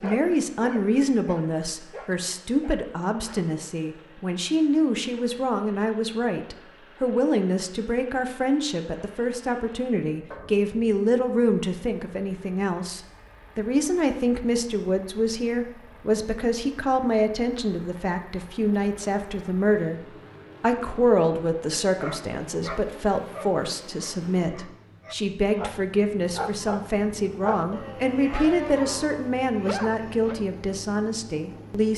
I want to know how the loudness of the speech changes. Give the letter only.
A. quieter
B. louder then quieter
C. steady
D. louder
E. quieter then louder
C.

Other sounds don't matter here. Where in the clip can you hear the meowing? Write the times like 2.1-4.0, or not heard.
not heard.